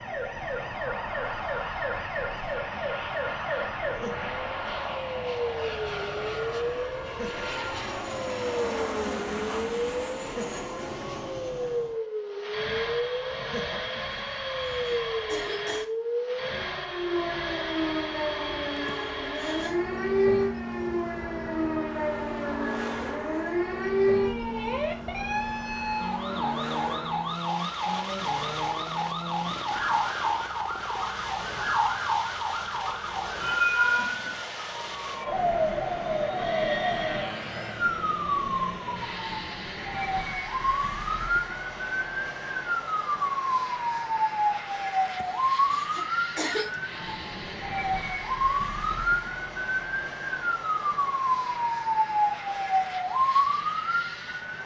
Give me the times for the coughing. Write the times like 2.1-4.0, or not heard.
14.1-15.8, 18.8-19.9, 45.0-46.8.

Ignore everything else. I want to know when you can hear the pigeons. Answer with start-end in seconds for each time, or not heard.
not heard.